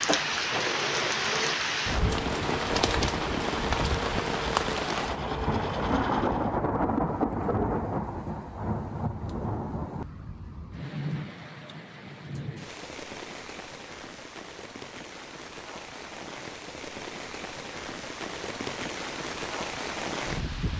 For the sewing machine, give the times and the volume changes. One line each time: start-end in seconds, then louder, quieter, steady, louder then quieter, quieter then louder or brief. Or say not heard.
0.2-6.6 steady.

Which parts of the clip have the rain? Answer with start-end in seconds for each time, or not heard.
0.0-20.7.